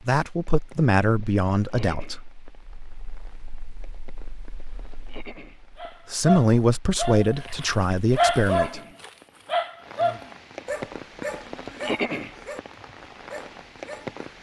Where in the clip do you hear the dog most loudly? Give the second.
8 s.